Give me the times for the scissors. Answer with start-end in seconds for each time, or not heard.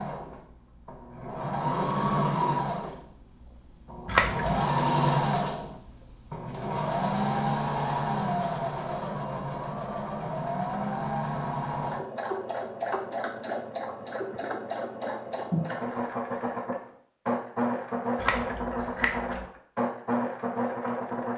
4.0-4.5, 18.2-19.4.